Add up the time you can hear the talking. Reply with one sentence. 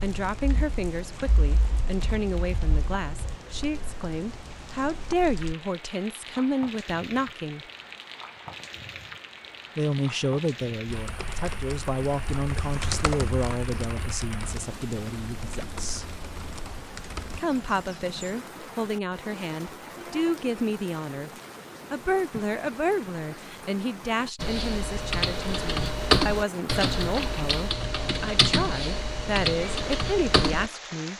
The talking can be heard for 27 seconds in total.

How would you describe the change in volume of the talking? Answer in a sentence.
The loudness of the talking stays about the same.